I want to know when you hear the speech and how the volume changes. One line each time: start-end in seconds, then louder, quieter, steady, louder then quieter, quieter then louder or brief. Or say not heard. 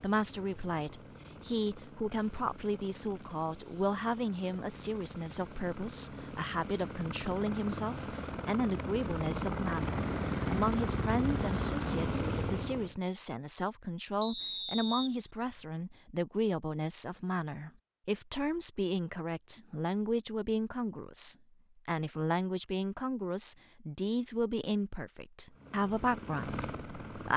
0.0-27.3 steady.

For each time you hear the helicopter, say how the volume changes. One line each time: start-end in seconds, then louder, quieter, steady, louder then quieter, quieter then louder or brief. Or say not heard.
0.0-12.9 louder
25.5-27.3 brief.